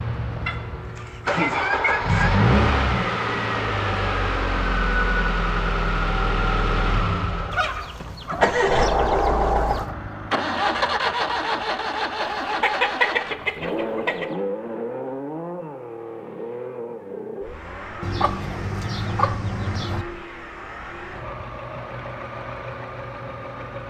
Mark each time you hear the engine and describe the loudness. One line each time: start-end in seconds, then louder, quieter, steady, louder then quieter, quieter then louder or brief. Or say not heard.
0.0-23.8 quieter.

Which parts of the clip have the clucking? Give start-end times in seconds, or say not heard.
0.5-2.4, 7.5-9.9, 12.4-14.3, 18.0-20.1.